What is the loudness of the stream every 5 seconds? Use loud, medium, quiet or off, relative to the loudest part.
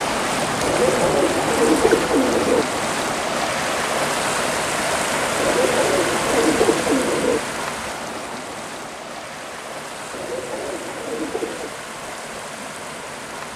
loud, loud, medium.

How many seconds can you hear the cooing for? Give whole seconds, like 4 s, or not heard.
6 s.